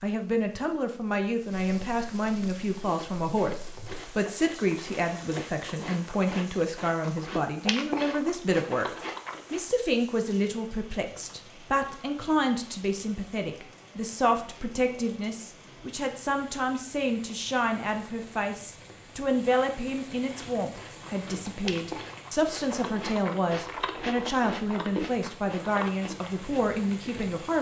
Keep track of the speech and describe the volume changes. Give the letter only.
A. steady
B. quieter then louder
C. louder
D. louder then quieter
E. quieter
A.